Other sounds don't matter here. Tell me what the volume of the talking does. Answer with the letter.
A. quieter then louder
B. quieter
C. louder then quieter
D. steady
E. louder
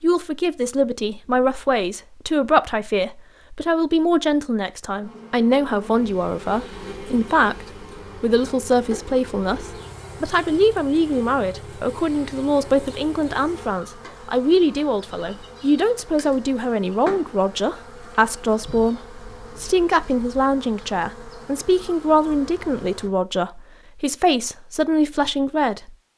D.